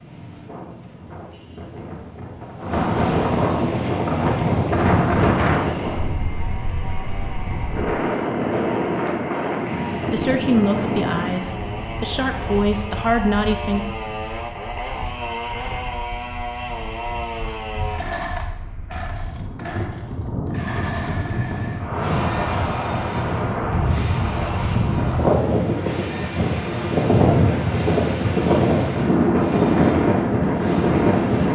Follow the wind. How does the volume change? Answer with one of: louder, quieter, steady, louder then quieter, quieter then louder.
quieter then louder.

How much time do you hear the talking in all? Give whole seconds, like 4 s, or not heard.
4 s.